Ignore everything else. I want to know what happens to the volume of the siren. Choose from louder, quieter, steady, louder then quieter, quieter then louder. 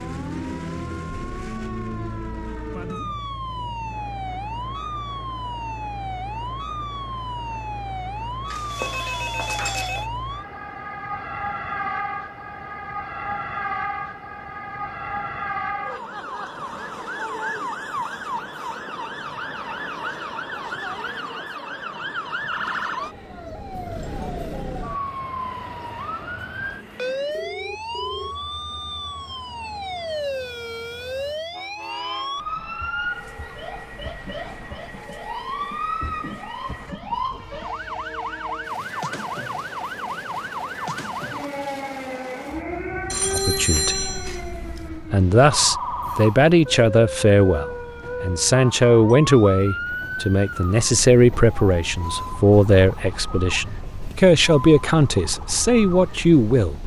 steady.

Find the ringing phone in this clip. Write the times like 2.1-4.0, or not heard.
8.5-10.1, 27.3-28.4, 43.1-44.9.